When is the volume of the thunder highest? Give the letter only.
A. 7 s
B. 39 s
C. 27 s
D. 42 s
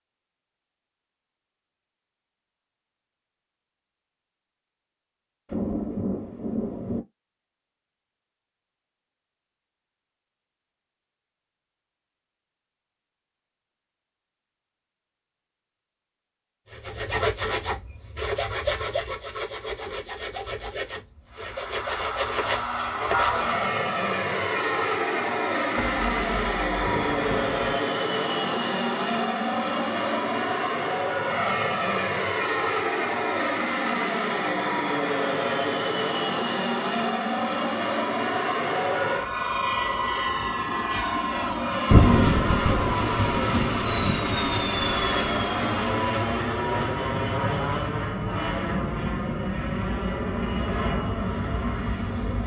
D.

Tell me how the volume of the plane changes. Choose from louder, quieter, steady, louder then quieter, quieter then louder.
steady.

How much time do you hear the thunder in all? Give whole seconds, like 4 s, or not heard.
7 s.